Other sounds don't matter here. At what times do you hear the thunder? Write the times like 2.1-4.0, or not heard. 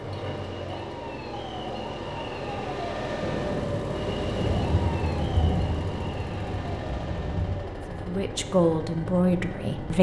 3.2-7.6.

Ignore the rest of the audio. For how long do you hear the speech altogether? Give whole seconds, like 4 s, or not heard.
2 s.